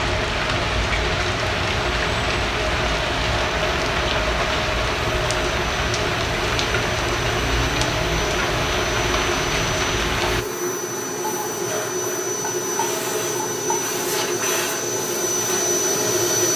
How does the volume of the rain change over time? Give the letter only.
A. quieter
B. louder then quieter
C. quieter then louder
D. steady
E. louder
D.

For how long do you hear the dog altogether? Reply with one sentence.
The dog can't be heard in this clip.